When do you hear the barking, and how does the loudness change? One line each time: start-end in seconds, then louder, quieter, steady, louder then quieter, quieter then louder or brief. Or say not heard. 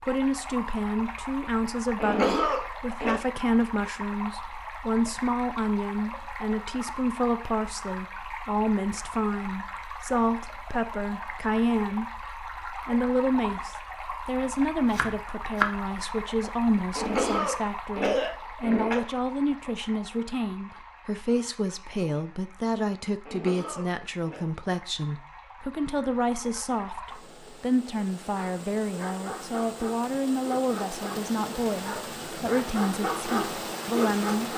28.3-34.5 louder.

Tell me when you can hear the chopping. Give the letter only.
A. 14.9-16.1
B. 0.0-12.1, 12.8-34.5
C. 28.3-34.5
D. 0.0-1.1
A.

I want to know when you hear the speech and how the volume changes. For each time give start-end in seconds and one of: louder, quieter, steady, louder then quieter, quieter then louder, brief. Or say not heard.
0.0-12.1 steady
12.8-34.5 steady.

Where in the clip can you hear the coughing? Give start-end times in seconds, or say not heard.
2.0-3.1, 16.9-19.0, 23.2-24.4.